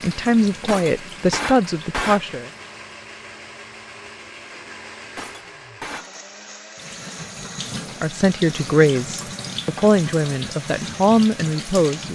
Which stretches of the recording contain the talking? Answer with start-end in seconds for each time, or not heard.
0.0-2.5, 8.0-12.1.